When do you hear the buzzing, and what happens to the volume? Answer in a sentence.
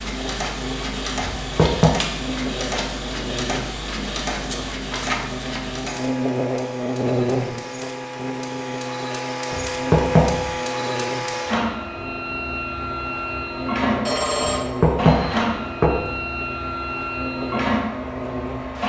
You can hear the buzzing from 0.0 to 18.8 s, getting louder then quieter.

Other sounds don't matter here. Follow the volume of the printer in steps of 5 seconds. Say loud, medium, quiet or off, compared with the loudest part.
loud, medium, loud, loud.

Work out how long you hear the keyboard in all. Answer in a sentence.
The keyboard can't be heard in this clip.